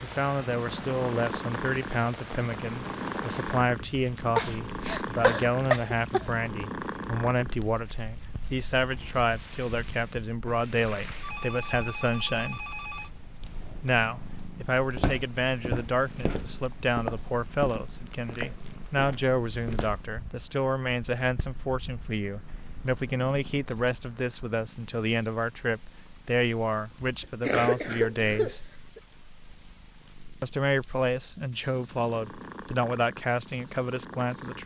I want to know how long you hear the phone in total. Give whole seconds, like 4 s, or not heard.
2 s.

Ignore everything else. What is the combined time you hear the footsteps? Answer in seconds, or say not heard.
5 s.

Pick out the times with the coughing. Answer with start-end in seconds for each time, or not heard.
4.3-6.2, 27.4-29.0.